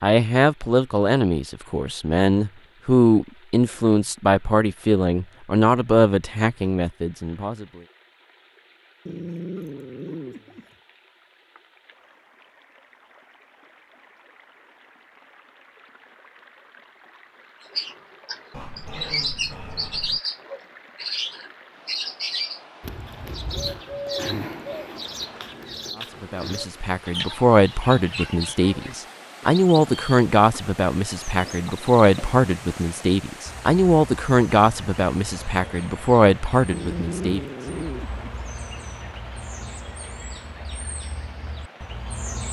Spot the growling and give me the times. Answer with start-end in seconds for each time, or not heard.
9.1-10.8, 18.5-20.2, 36.7-38.3.